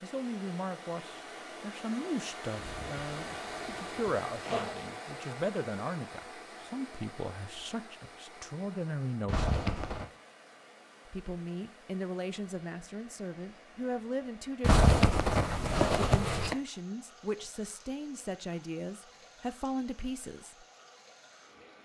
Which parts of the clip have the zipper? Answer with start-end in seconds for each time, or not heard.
2.5-4.8, 9.2-10.1, 14.6-16.6.